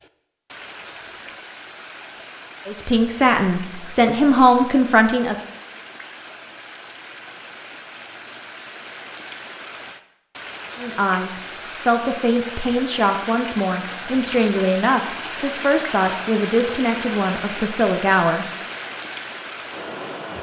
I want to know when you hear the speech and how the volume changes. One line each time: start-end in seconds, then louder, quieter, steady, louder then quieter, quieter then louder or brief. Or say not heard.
2.6-5.4 brief
10.8-18.5 steady.